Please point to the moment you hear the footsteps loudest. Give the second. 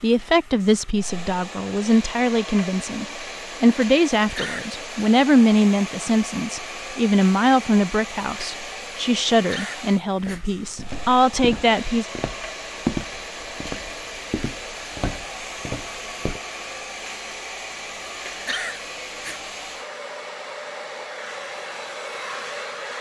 13 s.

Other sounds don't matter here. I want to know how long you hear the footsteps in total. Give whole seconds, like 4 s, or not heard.
6 s.